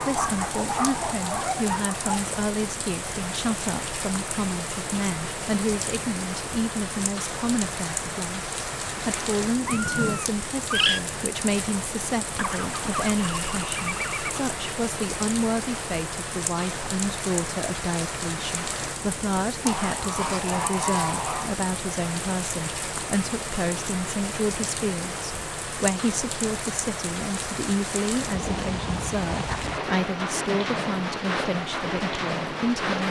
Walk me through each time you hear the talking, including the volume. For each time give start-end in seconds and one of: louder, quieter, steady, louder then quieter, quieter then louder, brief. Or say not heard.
0.1-33.0 steady.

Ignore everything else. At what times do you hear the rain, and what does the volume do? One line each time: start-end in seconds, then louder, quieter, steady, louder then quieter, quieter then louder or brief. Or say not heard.
0.0-33.0 steady.